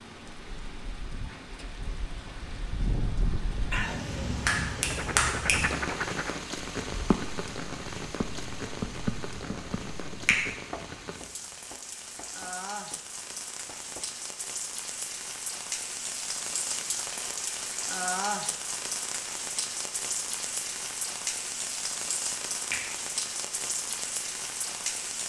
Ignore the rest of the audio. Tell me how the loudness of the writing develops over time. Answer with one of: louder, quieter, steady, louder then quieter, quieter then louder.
quieter.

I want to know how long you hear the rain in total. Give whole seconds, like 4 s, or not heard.
25 s.